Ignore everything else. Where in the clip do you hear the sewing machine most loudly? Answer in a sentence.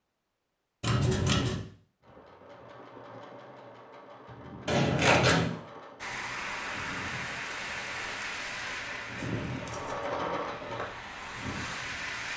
The volume of the sewing machine peaks at 10 seconds.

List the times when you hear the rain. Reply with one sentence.
You can hear the rain from 6.0 to 12.3 s.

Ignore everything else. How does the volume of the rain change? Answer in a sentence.
The volume of the rain goes down, then up.